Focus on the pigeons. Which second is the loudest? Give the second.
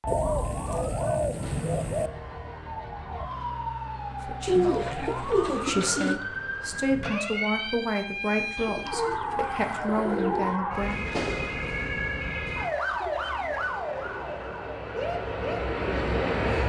5 s.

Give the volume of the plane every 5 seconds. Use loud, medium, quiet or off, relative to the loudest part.
off, off, quiet, loud.